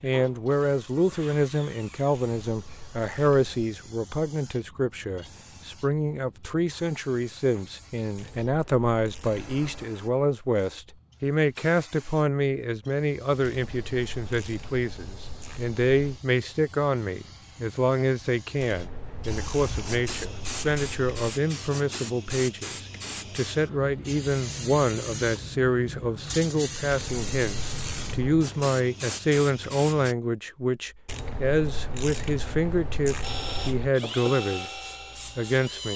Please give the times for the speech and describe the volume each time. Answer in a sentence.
The speech can be heard from 0.0 to 35.9 s, at a steady volume.